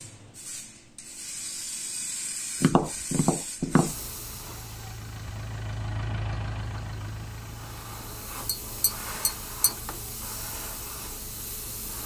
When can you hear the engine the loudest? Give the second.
6 s.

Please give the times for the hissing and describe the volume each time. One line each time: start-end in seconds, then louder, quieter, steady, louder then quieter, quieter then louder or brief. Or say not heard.
0.0-12.0 quieter then louder.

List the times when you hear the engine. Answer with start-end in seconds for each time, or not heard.
4.0-12.0.